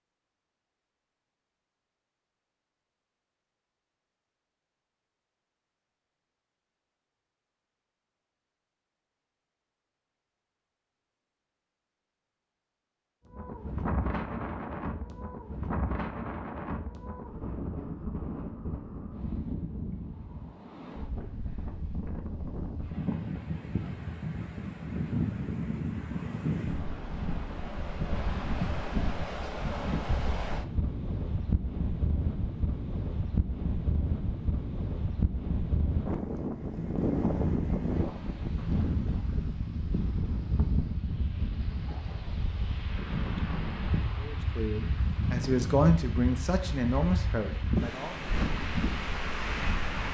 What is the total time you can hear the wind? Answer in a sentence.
You can hear the wind for 37 seconds altogether.